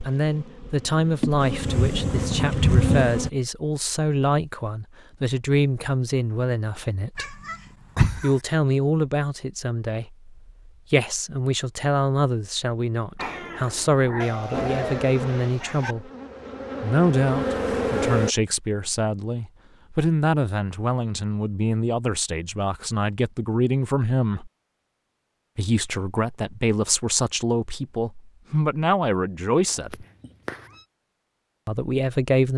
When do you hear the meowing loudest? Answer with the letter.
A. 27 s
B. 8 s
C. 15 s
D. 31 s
B.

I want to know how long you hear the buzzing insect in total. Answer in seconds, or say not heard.
7 s.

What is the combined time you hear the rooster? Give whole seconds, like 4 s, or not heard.
2 s.